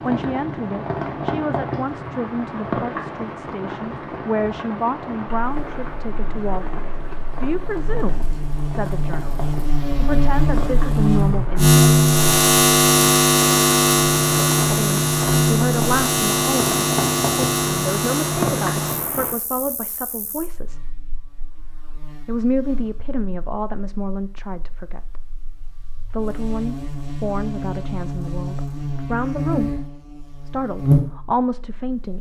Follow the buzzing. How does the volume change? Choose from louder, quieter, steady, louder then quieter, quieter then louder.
quieter then louder.